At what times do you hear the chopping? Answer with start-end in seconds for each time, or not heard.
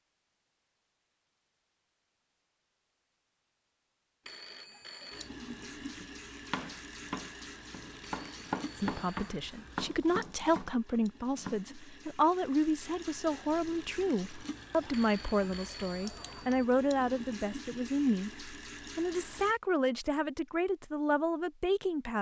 5.9-11.7.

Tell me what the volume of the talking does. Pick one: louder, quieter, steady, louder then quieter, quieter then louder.
steady.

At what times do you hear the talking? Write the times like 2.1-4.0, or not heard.
8.8-22.1.